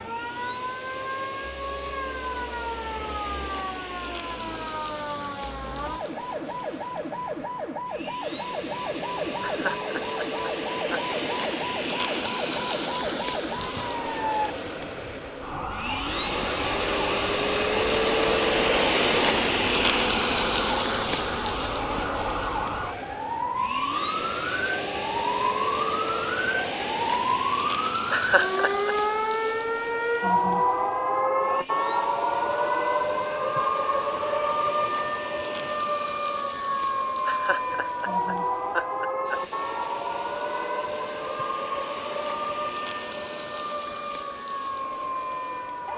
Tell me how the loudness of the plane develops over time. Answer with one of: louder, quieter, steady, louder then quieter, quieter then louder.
louder then quieter.